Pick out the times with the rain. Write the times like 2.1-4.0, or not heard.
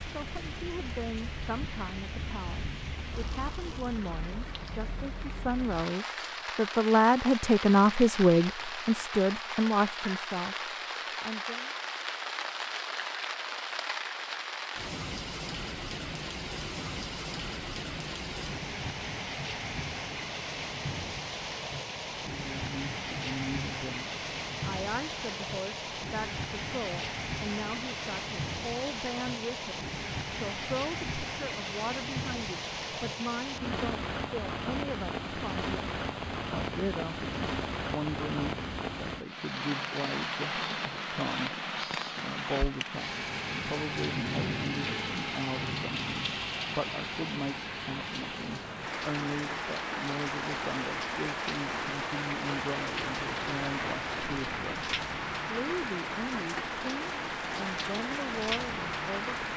0.0-59.5.